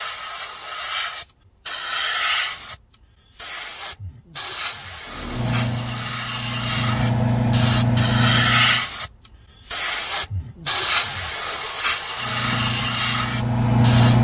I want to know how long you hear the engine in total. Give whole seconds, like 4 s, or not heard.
6 s.